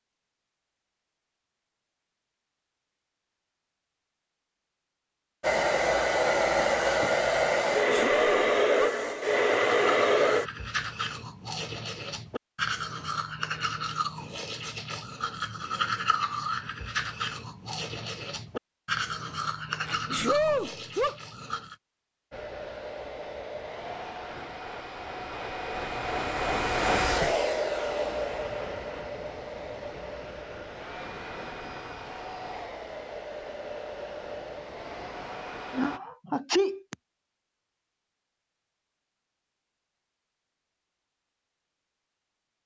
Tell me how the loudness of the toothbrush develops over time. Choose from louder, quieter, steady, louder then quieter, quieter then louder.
steady.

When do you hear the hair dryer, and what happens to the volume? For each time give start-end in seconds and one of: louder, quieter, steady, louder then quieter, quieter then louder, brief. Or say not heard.
5.4-10.5 steady
22.3-36.0 louder then quieter.